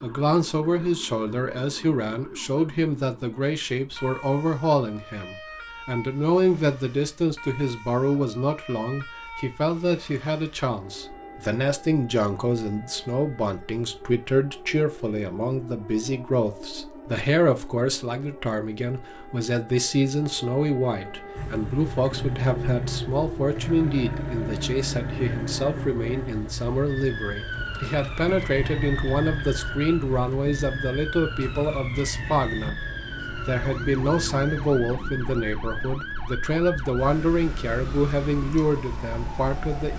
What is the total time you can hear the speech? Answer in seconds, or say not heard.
39 s.